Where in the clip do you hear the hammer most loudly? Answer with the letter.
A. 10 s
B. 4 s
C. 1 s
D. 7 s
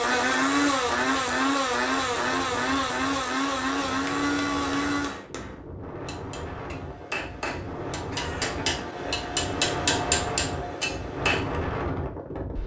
A.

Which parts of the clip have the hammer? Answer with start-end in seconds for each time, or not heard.
3.9-11.6.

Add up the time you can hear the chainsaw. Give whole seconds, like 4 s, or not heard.
5 s.